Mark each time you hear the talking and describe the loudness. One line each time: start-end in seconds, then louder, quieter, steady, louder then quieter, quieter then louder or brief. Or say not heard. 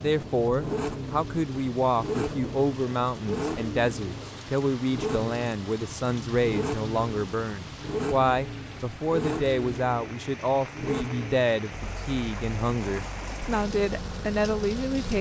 0.0-15.1 steady.